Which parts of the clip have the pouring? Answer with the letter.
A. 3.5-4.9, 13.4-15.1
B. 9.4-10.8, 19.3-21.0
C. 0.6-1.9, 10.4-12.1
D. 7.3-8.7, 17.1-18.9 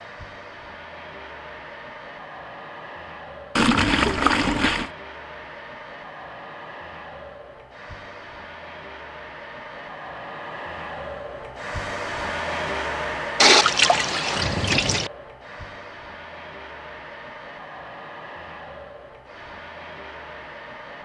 A.